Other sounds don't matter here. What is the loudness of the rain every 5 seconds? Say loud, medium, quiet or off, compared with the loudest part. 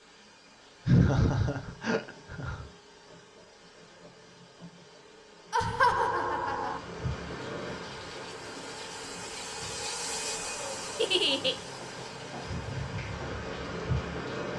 off, loud, loud.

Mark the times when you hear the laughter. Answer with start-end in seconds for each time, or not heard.
0.8-2.6, 5.5-6.8, 10.9-11.6.